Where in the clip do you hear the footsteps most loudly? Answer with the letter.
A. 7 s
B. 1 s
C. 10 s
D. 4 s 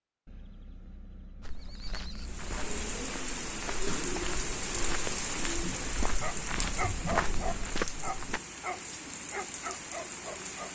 A.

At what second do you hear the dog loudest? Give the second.
7 s.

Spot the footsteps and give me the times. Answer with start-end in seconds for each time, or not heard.
1.4-8.4.